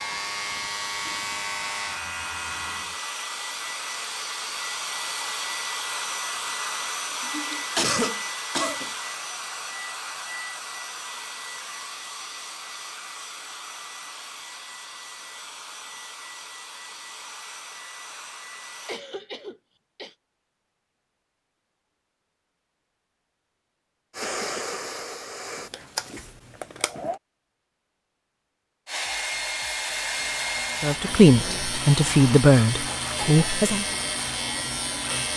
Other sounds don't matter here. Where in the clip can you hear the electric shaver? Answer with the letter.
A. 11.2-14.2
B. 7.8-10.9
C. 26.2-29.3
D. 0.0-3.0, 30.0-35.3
D.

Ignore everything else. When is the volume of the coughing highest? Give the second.
8 s.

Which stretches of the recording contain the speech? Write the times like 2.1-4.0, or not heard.
30.8-33.9.